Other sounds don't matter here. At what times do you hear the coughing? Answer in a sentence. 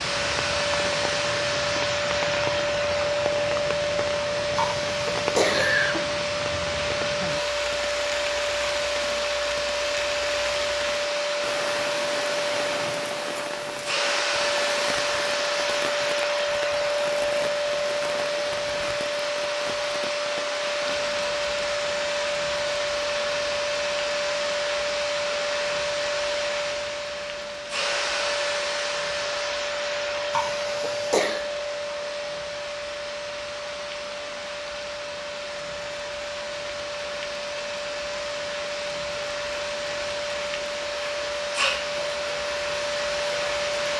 The coughing can be heard from 4.5 to 6.0 s and from 30.3 to 31.4 s.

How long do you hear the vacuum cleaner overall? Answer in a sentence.
The vacuum cleaner can be heard for 44 seconds in total.